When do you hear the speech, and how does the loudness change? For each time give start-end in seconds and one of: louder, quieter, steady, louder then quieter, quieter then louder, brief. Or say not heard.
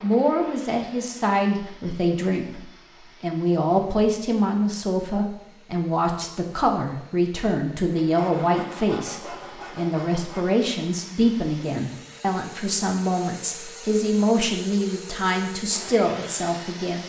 0.0-17.0 steady.